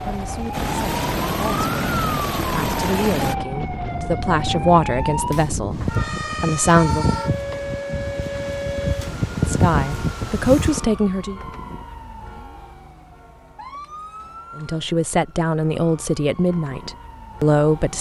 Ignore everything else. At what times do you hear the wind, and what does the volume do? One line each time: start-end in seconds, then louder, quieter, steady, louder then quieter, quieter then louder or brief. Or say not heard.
0.0-10.8 louder.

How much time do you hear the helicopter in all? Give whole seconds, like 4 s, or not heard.
3 s.